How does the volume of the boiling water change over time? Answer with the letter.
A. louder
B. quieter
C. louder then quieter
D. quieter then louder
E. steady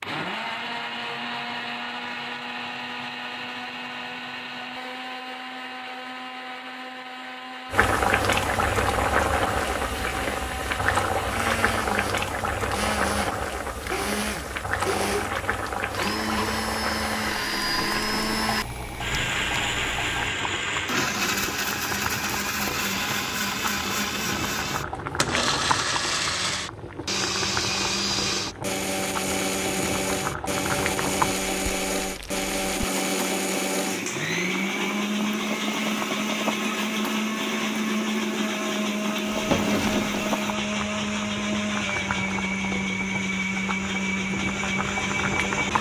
B.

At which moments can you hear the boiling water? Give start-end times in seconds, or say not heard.
7.7-45.7.